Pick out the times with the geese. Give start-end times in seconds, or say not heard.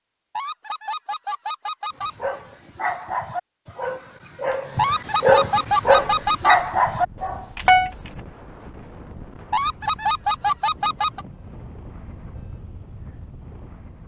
0.3-2.1, 4.8-6.5, 9.5-11.2.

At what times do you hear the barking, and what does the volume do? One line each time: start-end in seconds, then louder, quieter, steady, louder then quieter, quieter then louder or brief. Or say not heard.
1.9-8.1 louder.